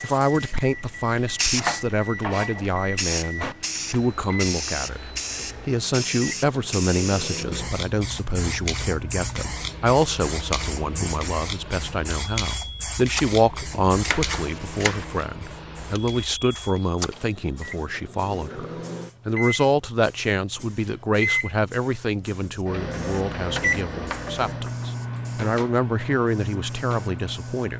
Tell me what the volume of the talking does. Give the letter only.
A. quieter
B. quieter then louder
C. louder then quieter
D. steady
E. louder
D.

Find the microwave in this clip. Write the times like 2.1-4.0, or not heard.
0.0-27.7.